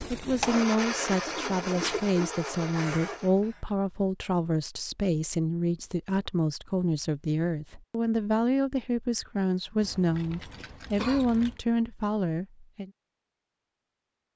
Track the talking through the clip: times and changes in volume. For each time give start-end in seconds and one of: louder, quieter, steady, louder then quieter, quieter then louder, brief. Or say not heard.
0.1-12.9 steady.